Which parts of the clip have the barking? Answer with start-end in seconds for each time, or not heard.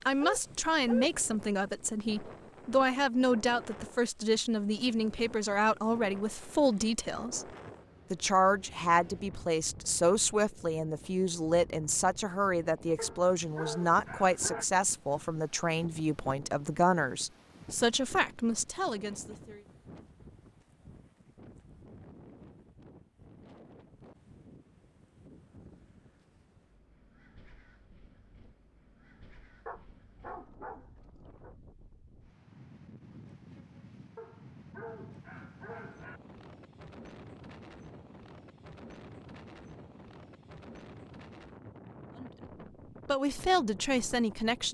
0.2-1.1, 12.9-14.7, 29.6-31.5, 34.1-36.2.